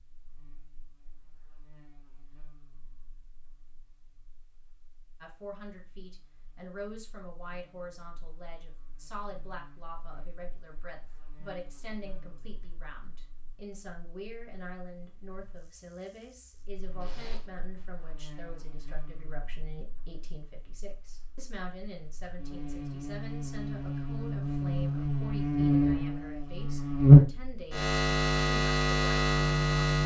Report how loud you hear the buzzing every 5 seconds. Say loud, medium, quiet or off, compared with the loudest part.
quiet, quiet, quiet, quiet, quiet, loud.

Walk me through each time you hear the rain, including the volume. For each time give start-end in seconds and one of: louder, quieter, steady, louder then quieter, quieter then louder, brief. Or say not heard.
not heard.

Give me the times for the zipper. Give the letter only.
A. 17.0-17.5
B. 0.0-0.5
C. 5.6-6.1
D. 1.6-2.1
A.